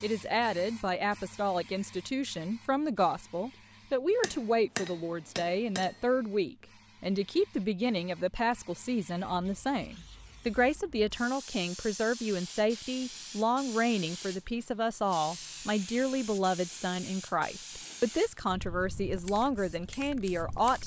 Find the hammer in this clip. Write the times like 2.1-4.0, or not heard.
4.2-6.0.